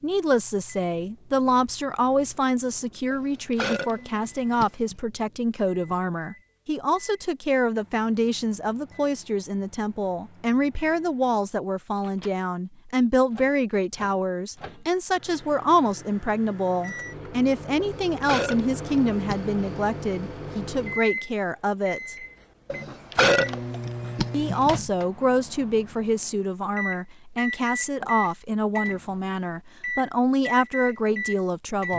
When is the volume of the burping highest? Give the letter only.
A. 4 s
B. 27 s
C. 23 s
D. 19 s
C.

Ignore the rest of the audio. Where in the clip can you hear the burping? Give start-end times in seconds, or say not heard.
3.1-5.0, 17.8-19.6, 22.7-24.7.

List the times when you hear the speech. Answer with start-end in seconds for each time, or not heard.
0.0-22.1, 24.3-31.9.